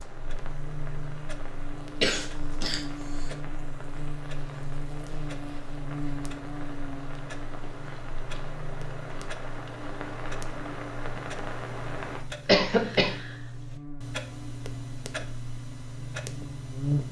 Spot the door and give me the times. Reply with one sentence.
The door can't be heard in this clip.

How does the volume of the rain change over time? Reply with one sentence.
The volume of the rain goes up.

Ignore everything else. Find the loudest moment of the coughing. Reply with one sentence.
The volume of the coughing peaks at 13 seconds.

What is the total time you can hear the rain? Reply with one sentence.
The rain can be heard for 12 seconds in total.